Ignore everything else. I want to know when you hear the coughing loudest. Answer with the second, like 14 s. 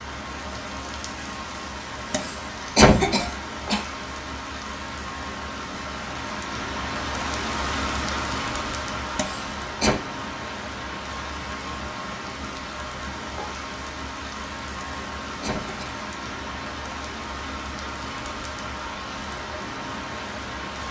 3 s.